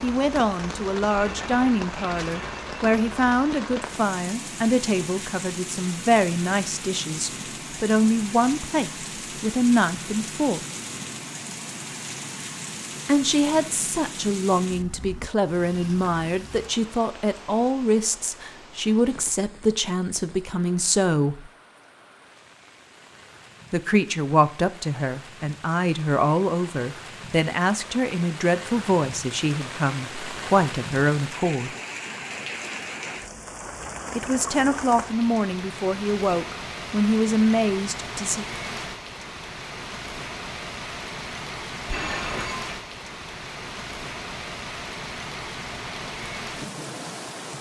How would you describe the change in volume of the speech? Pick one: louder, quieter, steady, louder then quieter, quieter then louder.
steady.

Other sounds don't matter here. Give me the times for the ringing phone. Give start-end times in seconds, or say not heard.
1.1-2.8, 41.9-42.8.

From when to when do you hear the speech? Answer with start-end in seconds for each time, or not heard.
0.0-10.6, 13.1-21.5, 23.7-31.7, 34.1-38.5.